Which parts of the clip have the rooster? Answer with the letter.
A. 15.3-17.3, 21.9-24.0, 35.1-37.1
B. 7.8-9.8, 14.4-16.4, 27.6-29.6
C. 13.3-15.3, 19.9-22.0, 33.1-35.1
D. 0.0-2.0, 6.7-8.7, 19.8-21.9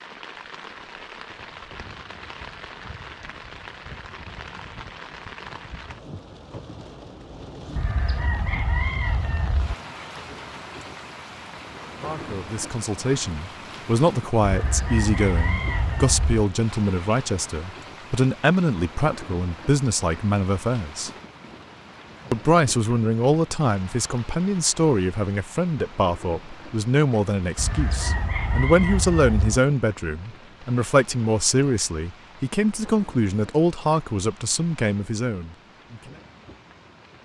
B.